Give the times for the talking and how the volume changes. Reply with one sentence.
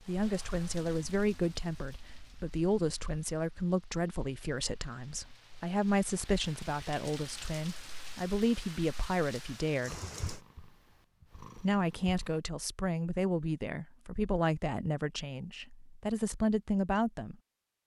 The talking can be heard from 0.1 to 10.0 s, at a steady volume; and from 11.6 to 17.4 s, getting quieter then louder.